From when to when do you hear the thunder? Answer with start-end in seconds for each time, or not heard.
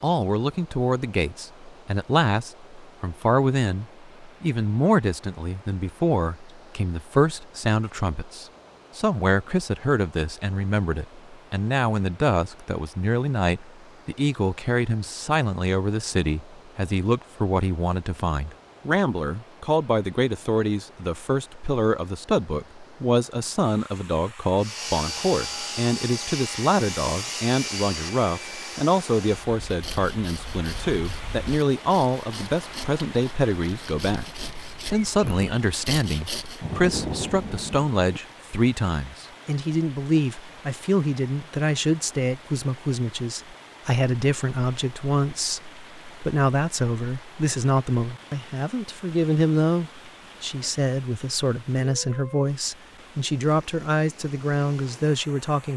36.5-38.2.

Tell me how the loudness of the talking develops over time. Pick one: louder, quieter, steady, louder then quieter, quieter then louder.
steady.